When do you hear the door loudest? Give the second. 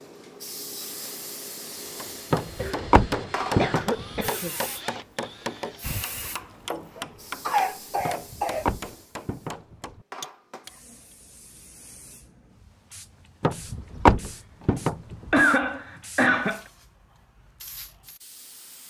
14 s.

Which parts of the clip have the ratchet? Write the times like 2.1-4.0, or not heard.
not heard.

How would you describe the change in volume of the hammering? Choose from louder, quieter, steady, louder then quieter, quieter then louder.
quieter.